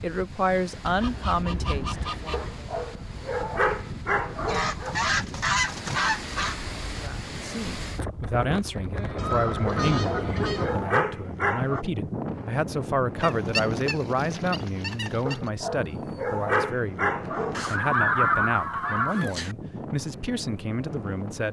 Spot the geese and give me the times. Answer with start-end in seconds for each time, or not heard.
0.8-2.5, 4.5-6.5, 9.2-10.8, 13.2-15.4, 17.6-19.6.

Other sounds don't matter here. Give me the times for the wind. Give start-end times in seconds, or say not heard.
0.0-21.4.